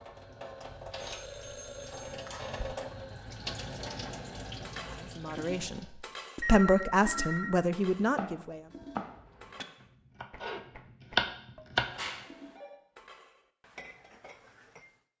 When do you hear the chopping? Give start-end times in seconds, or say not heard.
8.2-11.9.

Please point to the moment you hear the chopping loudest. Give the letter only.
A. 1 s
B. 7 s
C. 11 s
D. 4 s
C.